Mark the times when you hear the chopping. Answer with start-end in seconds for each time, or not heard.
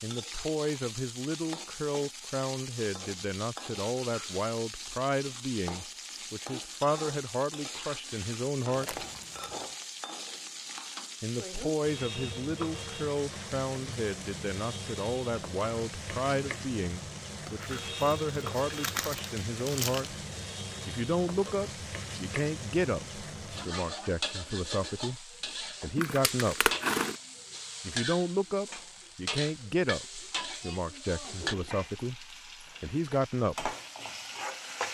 not heard.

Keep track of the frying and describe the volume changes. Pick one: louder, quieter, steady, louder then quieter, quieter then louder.
steady.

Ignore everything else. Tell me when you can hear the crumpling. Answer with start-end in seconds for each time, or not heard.
8.7-9.7, 17.4-20.1, 25.9-27.1.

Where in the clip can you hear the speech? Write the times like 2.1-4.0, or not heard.
0.0-9.1, 11.2-20.1, 20.9-26.8, 27.8-33.8.